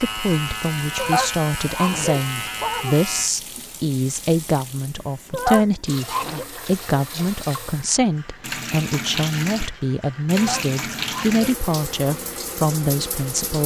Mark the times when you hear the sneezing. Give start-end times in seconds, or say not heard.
0.9-3.0, 5.3-6.5, 10.3-11.4.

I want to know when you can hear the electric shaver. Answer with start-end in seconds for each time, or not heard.
0.0-3.3.